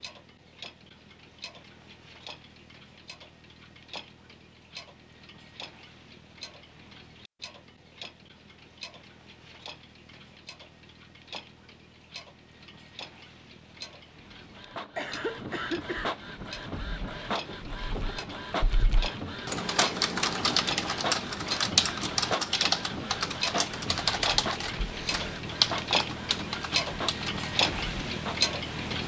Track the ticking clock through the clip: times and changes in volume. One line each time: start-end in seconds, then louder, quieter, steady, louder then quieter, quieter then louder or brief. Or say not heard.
0.0-29.0 louder.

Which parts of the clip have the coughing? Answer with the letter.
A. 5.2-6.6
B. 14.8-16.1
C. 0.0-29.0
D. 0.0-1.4
B.